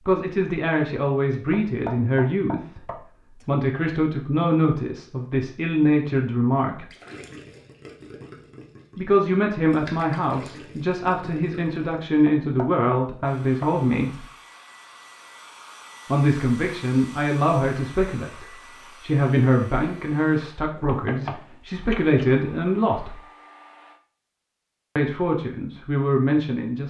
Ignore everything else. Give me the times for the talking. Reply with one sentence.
The talking can be heard from 0.1 to 6.8 s, from 8.9 to 14.2 s, from 16.1 to 23.2 s and from 24.9 to 26.8 s.